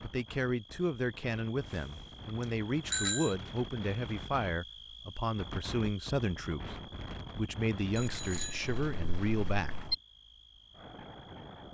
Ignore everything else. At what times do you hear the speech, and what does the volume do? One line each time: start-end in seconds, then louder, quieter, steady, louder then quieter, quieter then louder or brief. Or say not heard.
0.0-9.9 steady.